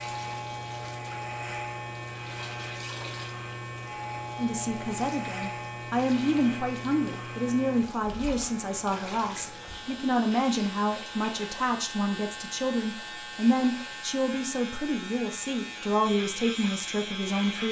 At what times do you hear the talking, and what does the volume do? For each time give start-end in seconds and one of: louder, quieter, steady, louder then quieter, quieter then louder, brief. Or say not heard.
4.3-17.6 steady.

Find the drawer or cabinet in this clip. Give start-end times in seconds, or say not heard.
not heard.